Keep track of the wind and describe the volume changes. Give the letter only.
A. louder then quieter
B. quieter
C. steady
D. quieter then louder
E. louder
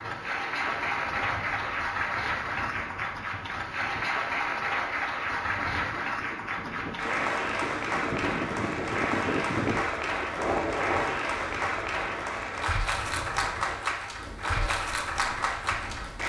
A.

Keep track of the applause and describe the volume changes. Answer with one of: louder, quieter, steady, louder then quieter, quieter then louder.
steady.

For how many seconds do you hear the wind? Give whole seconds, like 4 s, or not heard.
16 s.